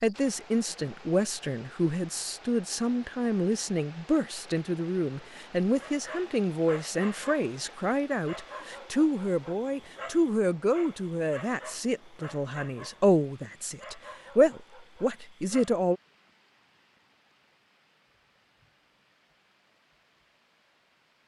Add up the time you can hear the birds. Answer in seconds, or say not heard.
not heard.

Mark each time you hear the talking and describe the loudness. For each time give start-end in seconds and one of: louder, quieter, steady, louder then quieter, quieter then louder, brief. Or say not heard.
0.0-15.9 steady.